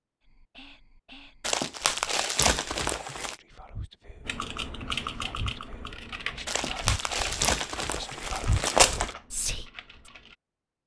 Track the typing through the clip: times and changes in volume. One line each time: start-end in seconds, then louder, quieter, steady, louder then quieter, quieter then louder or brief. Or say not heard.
4.2-10.3 quieter.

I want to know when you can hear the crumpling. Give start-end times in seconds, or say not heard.
1.4-3.4, 6.5-9.2.